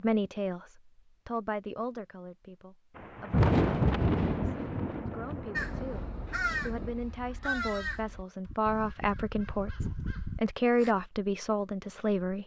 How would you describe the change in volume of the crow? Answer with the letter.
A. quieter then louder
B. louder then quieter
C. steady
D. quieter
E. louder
A.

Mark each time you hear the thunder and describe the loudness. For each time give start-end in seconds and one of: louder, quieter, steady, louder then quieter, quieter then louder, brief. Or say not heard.
3.0-7.0 quieter.